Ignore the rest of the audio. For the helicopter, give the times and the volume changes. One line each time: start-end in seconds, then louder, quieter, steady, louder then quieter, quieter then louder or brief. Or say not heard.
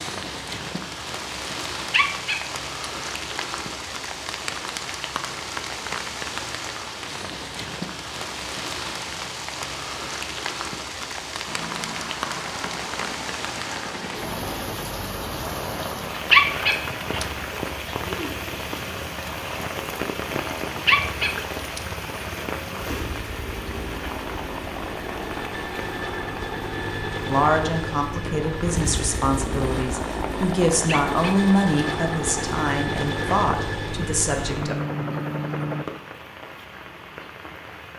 11.4-35.9 louder.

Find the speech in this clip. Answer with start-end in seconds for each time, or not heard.
27.2-34.9.